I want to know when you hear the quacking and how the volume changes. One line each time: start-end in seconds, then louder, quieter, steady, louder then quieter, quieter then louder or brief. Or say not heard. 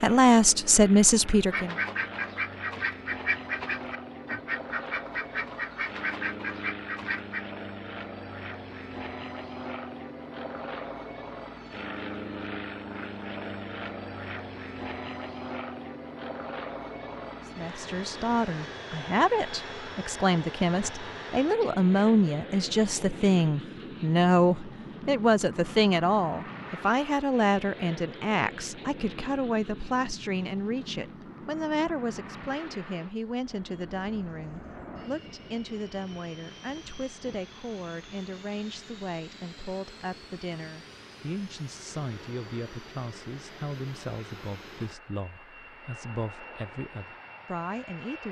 1.5-7.5 steady.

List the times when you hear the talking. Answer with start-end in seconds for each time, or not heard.
0.0-1.8, 17.4-48.2.